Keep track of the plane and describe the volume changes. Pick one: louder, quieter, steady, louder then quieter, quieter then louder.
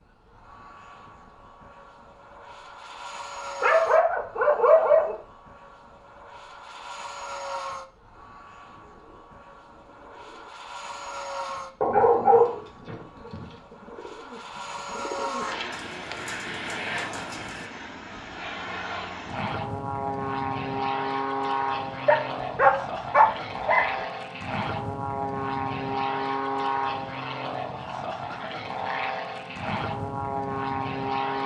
louder.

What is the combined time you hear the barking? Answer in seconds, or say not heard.
5 s.